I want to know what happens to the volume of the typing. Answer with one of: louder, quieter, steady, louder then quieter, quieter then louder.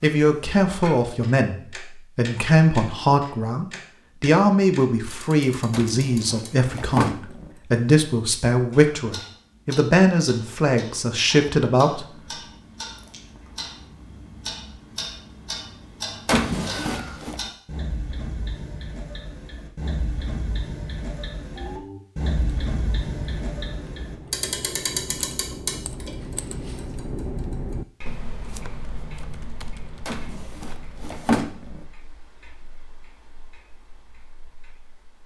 louder then quieter.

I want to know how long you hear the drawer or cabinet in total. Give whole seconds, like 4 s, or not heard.
5 s.